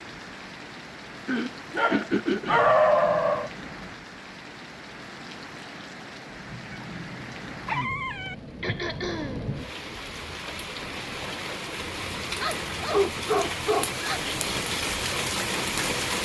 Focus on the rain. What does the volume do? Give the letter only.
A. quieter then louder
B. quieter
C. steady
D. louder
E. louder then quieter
D.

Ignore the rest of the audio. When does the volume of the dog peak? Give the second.
3 s.